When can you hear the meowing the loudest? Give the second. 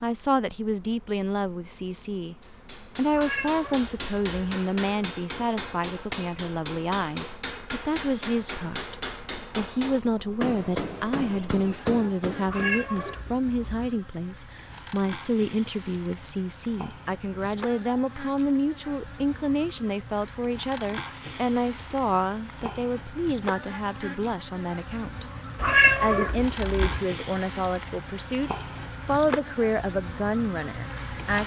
26 s.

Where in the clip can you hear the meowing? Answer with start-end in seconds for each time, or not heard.
3.1-4.6, 12.4-13.9, 25.6-27.1.